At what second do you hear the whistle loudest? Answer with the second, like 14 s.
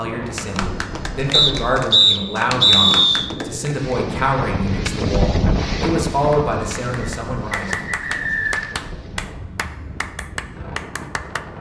3 s.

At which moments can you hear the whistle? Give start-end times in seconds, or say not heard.
1.3-3.2, 7.0-8.8.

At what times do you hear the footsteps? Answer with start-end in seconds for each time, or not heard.
not heard.